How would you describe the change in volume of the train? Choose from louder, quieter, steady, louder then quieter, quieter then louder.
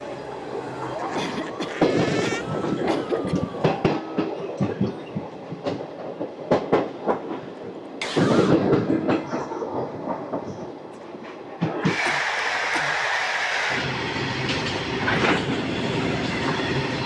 steady.